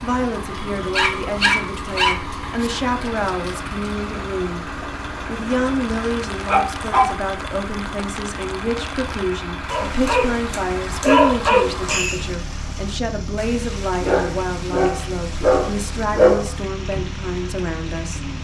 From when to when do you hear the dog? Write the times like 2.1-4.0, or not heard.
0.9-2.7, 5.8-7.0, 9.7-12.2, 14.0-16.5.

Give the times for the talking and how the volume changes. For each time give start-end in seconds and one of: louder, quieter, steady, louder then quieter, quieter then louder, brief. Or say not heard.
0.0-18.3 steady.